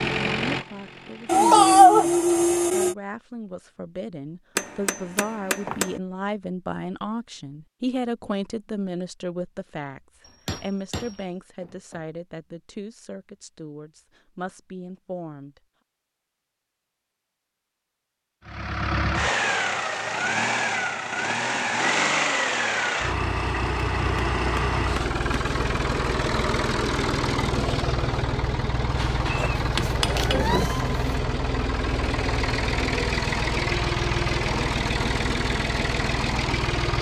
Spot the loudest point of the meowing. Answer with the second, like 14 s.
2 s.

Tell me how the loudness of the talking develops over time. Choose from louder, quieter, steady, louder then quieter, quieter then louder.
louder then quieter.